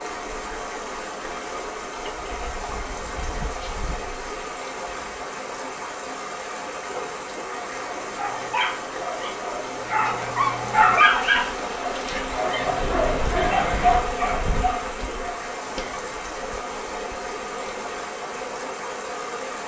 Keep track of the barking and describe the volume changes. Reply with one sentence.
The volume of the barking goes up, then down.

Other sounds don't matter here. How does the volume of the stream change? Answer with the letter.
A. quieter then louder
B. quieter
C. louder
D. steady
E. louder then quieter
D.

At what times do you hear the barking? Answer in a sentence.
The barking can be heard from 6.8 to 16.1 s.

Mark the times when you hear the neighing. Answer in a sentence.
You can hear the neighing from 13.3 to 14.1 s.